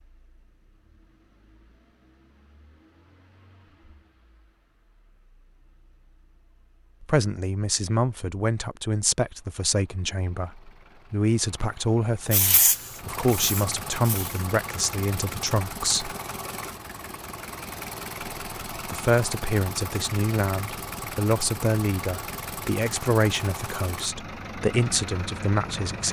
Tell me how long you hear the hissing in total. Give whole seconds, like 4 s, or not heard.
2 s.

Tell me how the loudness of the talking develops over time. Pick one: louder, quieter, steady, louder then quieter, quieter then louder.
steady.